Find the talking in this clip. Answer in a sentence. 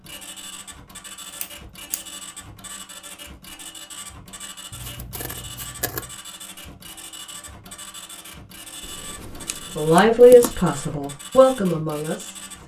You can hear the talking from 9.8 to 12.3 s.